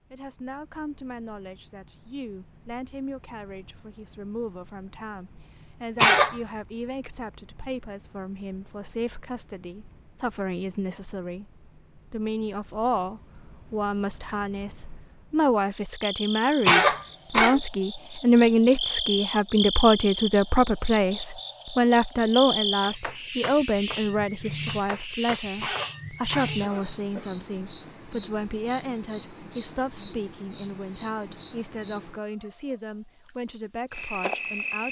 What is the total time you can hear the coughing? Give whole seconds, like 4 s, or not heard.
3 s.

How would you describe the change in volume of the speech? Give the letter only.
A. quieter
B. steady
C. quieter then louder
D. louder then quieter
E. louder
D.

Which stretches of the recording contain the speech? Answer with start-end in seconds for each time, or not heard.
0.1-34.8.